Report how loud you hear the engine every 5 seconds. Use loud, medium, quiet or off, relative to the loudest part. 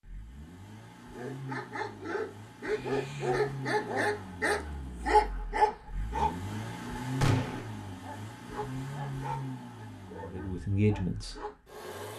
medium, loud, medium.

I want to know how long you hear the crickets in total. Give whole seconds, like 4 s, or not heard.
not heard.